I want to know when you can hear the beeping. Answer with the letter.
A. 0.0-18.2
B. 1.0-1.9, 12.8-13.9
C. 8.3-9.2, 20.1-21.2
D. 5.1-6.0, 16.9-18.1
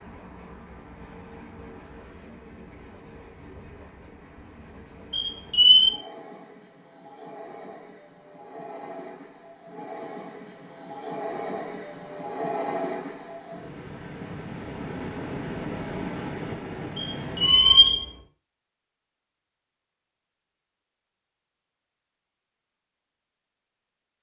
D.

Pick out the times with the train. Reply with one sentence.
You can hear the train from 0.0 to 18.2 s.